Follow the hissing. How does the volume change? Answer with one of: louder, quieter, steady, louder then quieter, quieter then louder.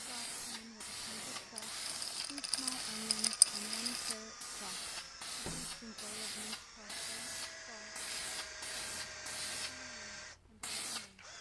steady.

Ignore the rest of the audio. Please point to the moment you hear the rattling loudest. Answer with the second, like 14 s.
3 s.